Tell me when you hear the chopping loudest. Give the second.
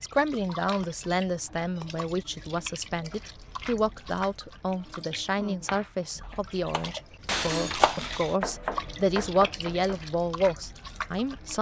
8 s.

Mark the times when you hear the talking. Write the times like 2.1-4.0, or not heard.
0.0-11.5.